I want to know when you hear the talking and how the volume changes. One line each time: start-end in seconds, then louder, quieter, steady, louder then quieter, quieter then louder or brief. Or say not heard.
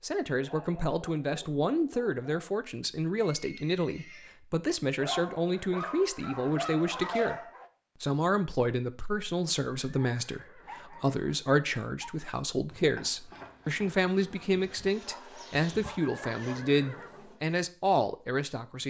0.0-18.8 steady.